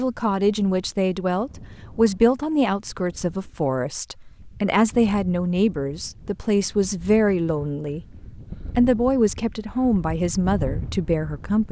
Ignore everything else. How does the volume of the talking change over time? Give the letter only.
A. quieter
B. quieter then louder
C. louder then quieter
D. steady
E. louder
D.